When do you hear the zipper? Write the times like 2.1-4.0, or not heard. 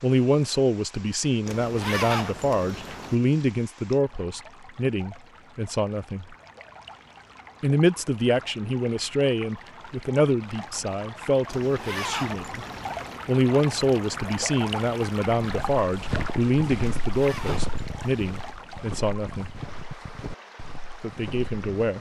1.4-3.1, 11.4-13.2, 17.0-18.6.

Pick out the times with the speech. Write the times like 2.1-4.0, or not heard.
0.0-6.3, 7.6-12.7, 13.2-19.6, 21.0-21.9.